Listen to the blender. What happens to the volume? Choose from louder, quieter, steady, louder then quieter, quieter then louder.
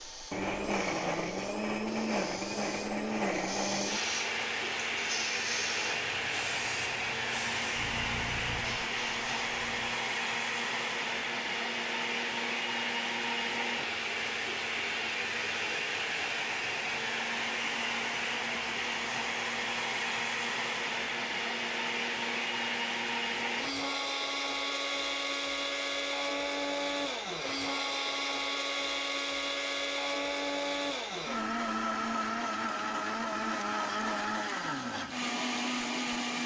steady.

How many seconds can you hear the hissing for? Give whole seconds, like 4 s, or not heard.
10 s.